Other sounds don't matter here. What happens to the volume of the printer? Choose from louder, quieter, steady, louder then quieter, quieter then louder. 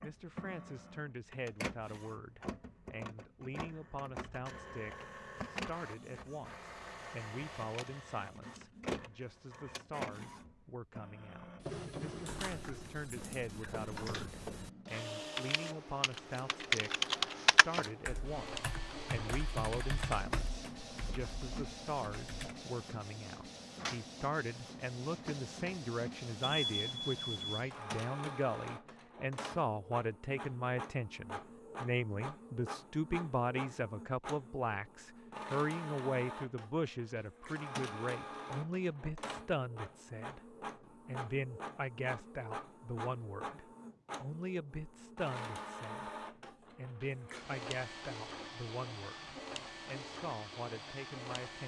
steady.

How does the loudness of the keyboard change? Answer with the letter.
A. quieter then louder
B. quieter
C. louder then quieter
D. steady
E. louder
C.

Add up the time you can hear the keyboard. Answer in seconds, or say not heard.
10 s.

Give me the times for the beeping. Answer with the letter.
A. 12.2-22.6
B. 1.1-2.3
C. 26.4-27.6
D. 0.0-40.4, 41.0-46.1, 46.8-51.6
C.